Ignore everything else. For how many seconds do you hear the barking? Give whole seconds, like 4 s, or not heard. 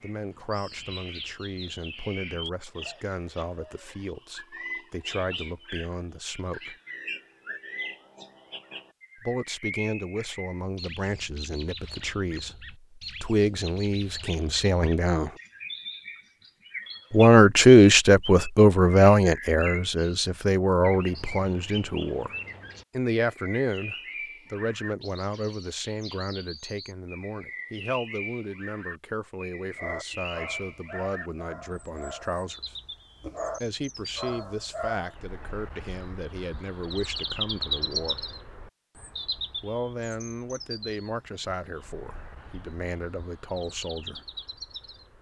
5 s.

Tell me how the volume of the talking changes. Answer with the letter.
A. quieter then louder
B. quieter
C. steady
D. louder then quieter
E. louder
D.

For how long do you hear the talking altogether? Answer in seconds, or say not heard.
38 s.